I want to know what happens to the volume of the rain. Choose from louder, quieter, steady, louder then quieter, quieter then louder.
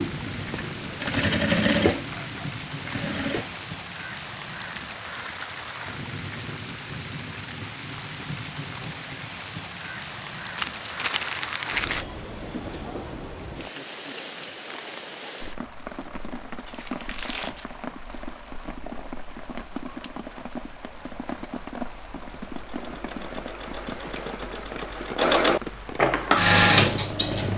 steady.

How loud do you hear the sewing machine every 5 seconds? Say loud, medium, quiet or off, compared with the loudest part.
medium, off, off, off, quiet, loud.